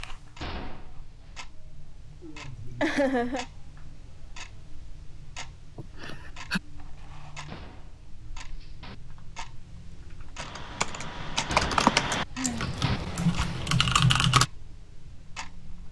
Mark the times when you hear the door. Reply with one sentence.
The door can be heard from 0.4 to 1.4 s, from 7.5 to 8.9 s and from 11.4 to 13.0 s.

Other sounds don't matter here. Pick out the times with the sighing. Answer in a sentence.
You can hear the sighing from 2.2 to 3.5 s, from 5.8 to 6.6 s and from 12.3 to 12.8 s.